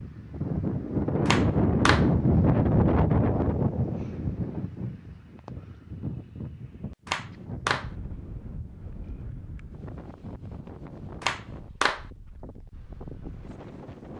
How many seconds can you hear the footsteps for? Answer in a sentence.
You can't hear the footsteps here.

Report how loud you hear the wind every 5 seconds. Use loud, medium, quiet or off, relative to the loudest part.
loud, quiet, quiet.